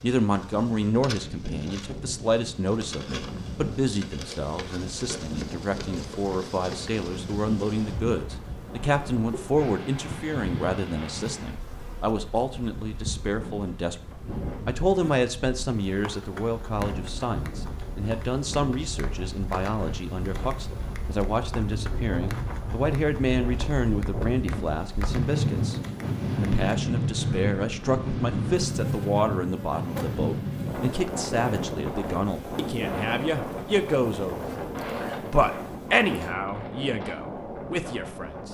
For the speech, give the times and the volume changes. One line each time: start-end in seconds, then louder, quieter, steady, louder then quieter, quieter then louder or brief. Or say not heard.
0.0-38.4 steady.